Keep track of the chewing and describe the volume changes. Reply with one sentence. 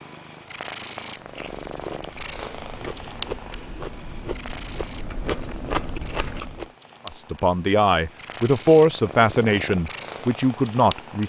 The volume of the chewing goes up.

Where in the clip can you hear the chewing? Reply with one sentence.
You can hear the chewing from 1.2 to 6.7 s.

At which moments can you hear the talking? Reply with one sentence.
The talking can be heard from 7.0 to 11.2 s.